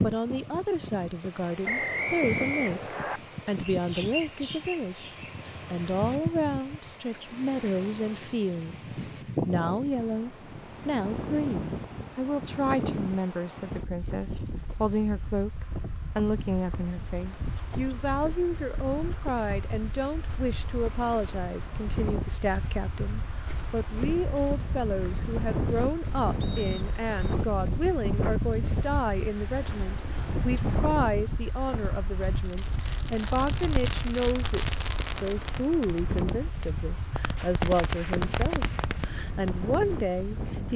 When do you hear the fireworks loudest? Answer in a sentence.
The volume of the fireworks peaks at 38 seconds.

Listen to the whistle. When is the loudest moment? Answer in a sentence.
The volume of the whistle peaks at 2 seconds.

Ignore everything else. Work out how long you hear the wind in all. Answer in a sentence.
The wind can be heard for 41 seconds in total.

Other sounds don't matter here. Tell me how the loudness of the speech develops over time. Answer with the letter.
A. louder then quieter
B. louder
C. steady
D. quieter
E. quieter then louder
C.